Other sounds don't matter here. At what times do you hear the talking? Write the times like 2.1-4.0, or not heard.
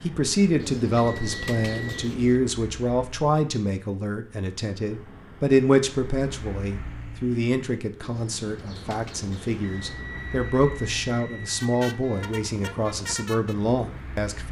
0.0-14.4.